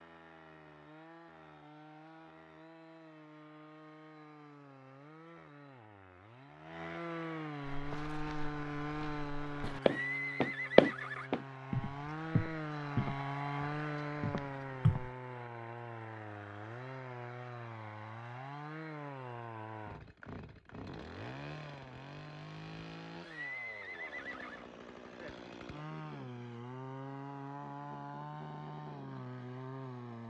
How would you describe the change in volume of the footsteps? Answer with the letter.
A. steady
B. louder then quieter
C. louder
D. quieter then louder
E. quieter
B.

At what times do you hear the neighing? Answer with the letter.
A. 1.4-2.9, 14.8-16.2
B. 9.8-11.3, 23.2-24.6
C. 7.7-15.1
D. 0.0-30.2
B.